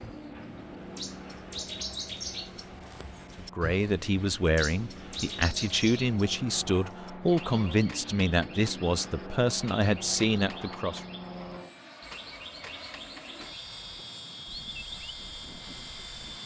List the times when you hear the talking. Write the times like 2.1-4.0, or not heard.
3.4-11.0.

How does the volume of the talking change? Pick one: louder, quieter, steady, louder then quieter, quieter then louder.
steady.